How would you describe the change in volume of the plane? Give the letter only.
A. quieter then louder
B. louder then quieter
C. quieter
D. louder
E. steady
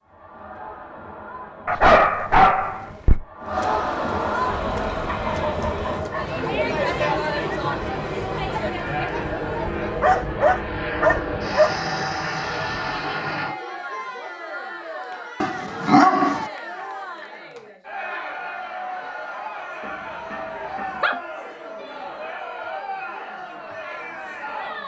D.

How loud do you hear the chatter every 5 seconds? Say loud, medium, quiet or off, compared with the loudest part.
loud, loud, medium, medium, medium.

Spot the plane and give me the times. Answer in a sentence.
The plane can be heard from 4.5 to 13.6 s.